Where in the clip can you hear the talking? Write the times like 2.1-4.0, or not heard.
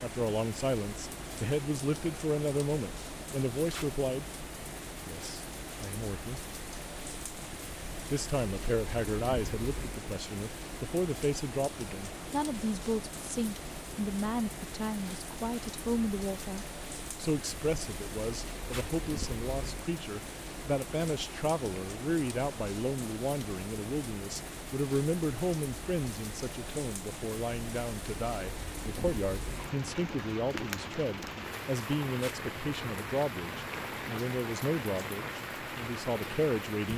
0.0-4.2, 5.0-6.5, 8.1-36.9.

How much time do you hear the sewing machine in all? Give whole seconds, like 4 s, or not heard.
not heard.